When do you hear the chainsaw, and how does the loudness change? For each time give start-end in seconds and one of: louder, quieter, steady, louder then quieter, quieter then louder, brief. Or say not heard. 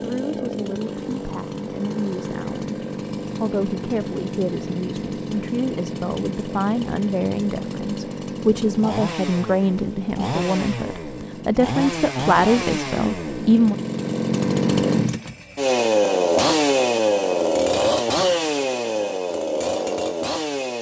0.0-20.7 louder.